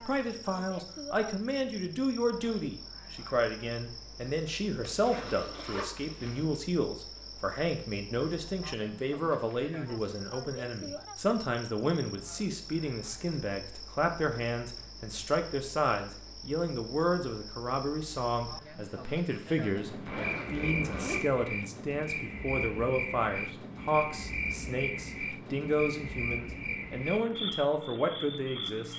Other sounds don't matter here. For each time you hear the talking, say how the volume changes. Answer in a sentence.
The talking can be heard from 0.1 to 28.9 s, at a steady volume.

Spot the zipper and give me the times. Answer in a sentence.
You can hear the zipper from 4.8 to 6.5 s and from 19.9 to 21.4 s.